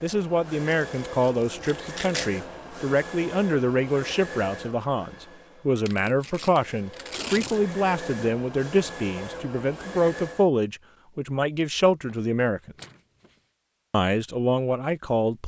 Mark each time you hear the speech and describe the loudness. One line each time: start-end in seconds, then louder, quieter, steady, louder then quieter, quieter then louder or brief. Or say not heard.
0.0-12.8 steady
13.9-15.4 brief.